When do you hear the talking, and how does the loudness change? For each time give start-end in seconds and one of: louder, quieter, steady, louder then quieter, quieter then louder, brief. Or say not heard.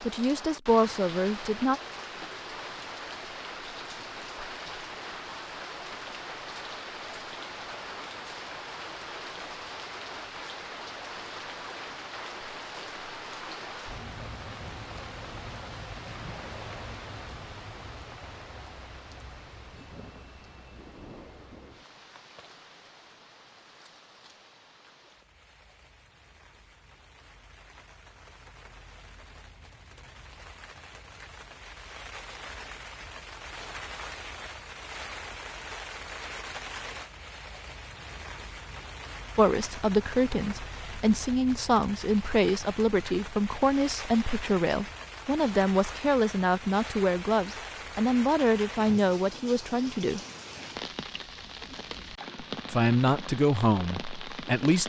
0.1-1.8 brief
39.4-50.2 steady
52.7-54.8 brief.